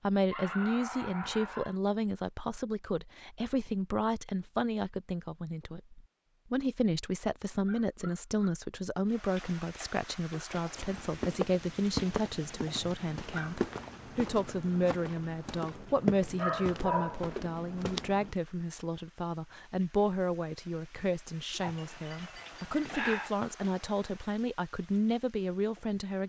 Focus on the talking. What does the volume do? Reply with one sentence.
The loudness of the talking stays about the same.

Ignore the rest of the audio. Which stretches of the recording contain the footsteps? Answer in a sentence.
You can hear the footsteps from 10.8 to 18.4 s.